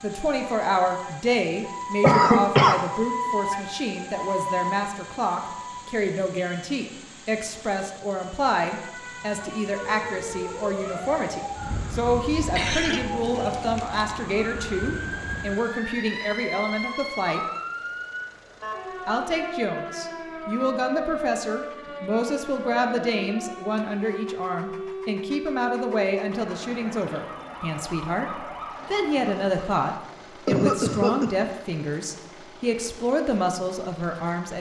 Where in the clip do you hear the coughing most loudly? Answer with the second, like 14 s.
2 s.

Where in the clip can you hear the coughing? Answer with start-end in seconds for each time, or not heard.
2.0-2.8, 12.6-13.9, 30.4-31.3.